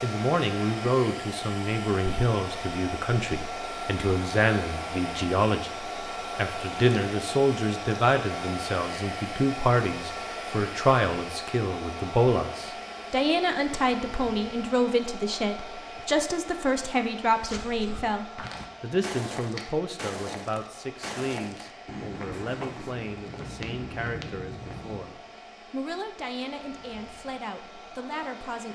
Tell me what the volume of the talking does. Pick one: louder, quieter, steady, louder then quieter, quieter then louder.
quieter.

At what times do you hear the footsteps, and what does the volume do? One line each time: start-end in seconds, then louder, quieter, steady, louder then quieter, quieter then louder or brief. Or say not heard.
17.3-25.2 steady.